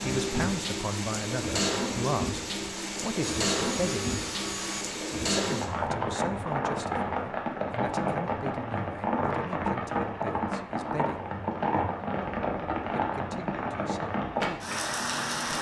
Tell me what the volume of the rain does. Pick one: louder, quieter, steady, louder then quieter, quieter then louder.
steady.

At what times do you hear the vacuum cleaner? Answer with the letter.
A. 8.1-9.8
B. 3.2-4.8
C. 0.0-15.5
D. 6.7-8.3
B.